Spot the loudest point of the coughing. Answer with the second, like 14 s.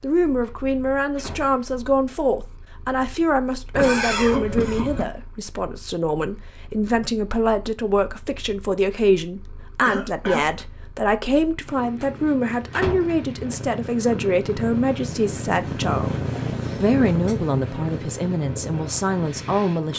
4 s.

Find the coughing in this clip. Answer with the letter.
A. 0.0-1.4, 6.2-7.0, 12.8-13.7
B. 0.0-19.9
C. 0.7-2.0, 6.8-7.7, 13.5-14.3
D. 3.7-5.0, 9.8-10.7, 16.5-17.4
D.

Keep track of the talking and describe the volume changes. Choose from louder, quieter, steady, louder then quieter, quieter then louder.
steady.